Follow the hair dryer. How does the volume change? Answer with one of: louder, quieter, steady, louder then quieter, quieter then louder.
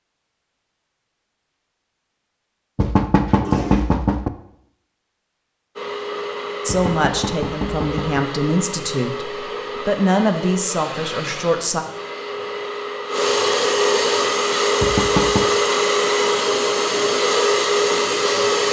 louder.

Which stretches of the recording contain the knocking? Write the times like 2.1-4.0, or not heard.
2.8-4.3, 6.7-8.2, 14.8-15.5.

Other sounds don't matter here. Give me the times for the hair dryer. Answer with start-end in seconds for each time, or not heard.
5.8-18.6.